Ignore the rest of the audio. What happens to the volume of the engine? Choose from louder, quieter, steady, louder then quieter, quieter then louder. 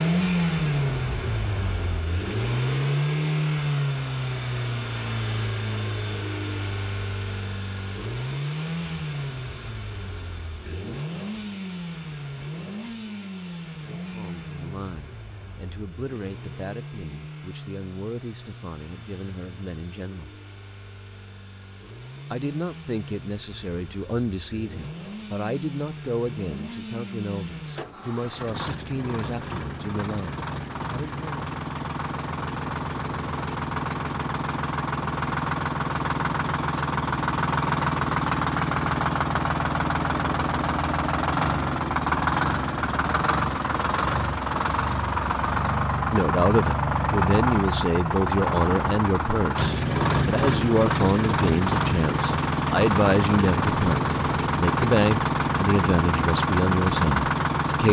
quieter then louder.